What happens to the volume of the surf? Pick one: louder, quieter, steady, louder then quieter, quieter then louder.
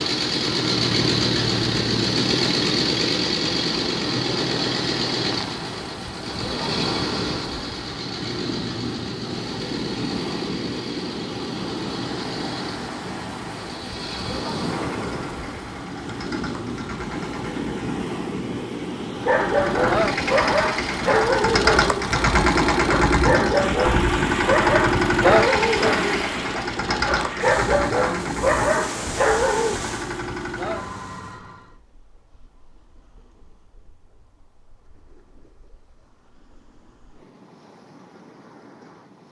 quieter.